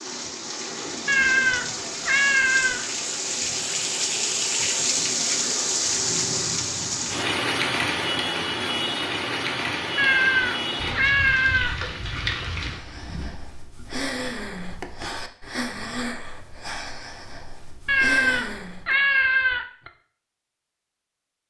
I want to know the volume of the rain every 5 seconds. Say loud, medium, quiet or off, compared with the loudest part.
loud, loud, medium, off, off.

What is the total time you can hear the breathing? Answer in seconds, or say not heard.
6 s.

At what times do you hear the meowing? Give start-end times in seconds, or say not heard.
1.1-2.8, 9.9-11.8, 17.9-19.9.